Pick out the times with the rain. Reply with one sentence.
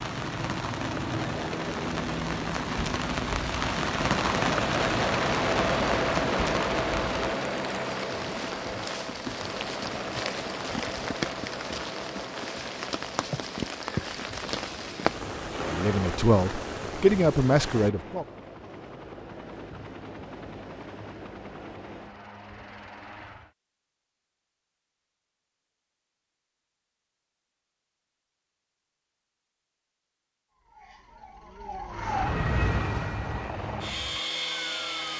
The rain can be heard from 0.0 to 17.9 s.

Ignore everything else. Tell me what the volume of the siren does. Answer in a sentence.
The loudness of the siren goes up, then down.